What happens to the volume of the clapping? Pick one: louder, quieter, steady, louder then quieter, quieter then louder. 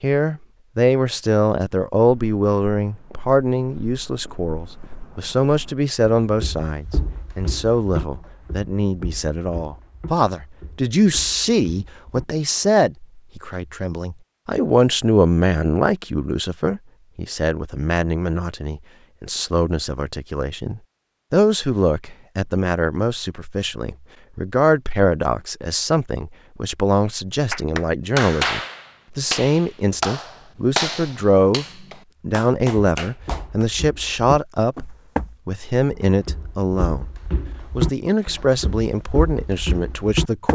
quieter then louder.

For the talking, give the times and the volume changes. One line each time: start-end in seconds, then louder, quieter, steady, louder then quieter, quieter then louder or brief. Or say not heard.
0.0-37.1 steady
37.8-40.4 brief.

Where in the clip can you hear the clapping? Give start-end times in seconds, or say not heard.
27.5-33.6.